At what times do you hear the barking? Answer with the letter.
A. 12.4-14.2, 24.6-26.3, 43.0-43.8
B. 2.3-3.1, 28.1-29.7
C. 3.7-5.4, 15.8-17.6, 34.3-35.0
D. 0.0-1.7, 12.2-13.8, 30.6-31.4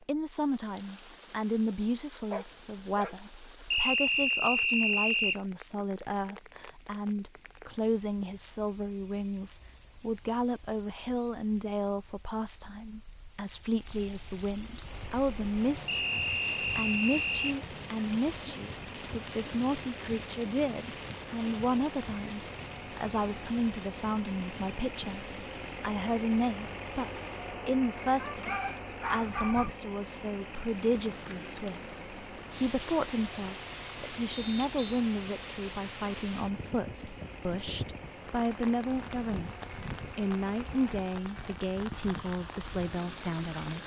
B.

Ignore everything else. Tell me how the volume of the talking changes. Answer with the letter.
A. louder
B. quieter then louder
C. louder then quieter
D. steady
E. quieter
D.